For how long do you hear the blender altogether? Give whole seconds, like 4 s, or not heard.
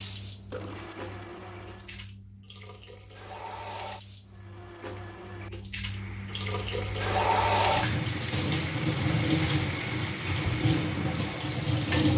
10 s.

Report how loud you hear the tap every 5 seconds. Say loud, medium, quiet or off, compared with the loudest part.
quiet, loud, loud.